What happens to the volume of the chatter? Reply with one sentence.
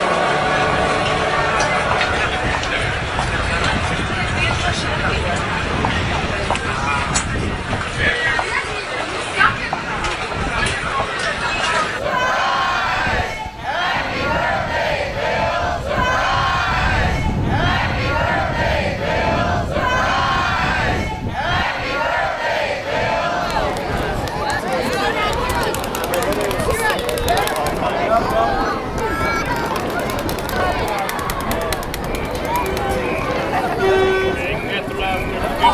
The volume of the chatter stays about the same.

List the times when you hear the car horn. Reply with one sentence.
The car horn can be heard from 16.8 to 17.8 s.